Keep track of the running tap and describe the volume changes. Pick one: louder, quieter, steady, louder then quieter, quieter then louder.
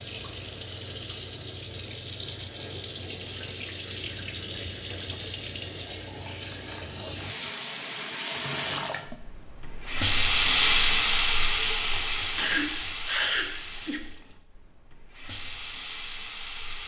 louder then quieter.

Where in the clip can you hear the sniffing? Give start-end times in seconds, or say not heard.
12.3-14.0.